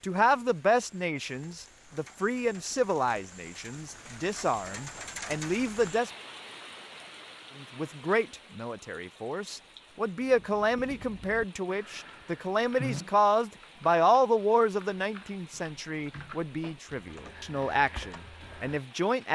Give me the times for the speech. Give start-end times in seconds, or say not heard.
0.0-6.1, 7.5-19.2.